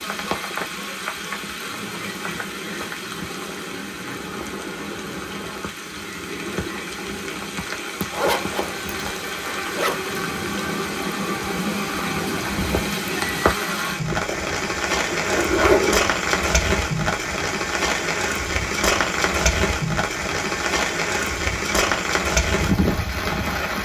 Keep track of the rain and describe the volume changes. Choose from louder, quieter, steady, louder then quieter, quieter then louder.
louder.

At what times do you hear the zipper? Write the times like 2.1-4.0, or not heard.
8.1-10.0, 14.1-16.1.